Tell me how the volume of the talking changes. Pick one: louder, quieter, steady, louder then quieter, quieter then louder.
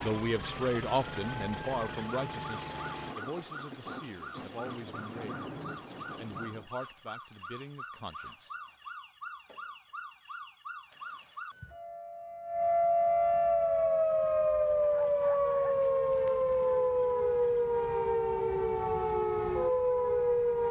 quieter.